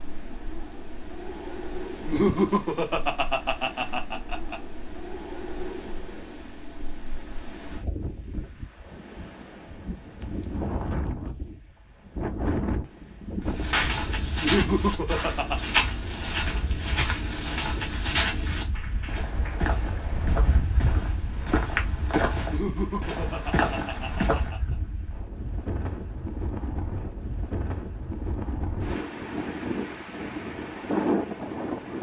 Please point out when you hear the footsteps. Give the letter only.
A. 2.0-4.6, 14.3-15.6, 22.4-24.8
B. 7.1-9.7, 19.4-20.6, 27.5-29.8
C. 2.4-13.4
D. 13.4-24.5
D.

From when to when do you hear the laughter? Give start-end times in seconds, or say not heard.
2.0-4.6, 14.3-15.6, 22.4-24.8.